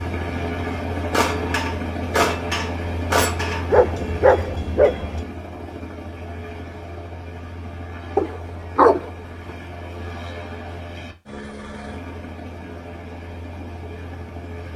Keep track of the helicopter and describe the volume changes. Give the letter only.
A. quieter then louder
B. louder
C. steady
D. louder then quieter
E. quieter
E.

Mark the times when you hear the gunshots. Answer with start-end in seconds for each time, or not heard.
1.1-3.7.